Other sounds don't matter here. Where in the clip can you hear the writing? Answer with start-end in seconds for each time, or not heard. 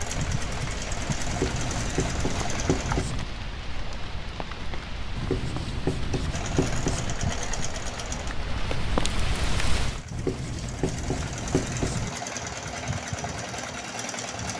1.2-3.2, 5.2-7.2, 10.1-12.1.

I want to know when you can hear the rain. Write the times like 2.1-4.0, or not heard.
0.0-10.1.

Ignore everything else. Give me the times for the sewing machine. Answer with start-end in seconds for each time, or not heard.
0.0-3.0, 6.3-14.5.